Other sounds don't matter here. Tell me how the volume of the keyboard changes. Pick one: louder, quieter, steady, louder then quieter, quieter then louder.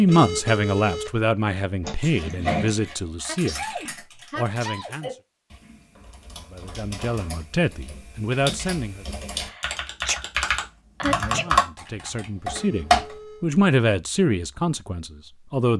quieter then louder.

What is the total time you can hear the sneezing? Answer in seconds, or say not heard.
3 s.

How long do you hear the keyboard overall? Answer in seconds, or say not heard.
11 s.